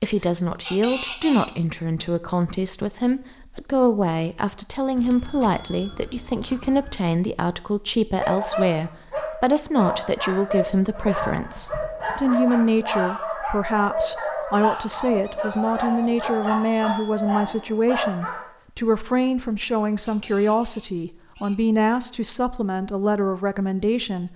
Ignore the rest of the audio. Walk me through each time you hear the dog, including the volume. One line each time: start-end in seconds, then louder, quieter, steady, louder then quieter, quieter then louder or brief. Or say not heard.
8.2-18.4 steady.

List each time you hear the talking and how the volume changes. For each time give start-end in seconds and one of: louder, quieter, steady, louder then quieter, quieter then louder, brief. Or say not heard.
0.0-24.3 steady.